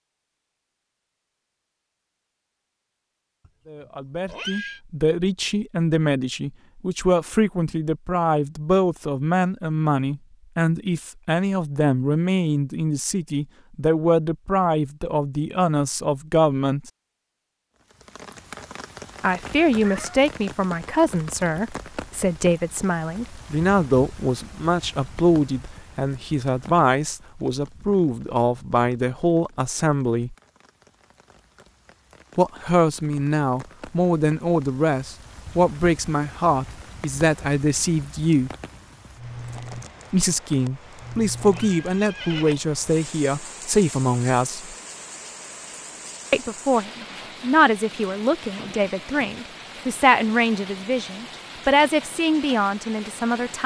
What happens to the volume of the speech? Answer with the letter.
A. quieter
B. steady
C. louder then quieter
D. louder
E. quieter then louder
B.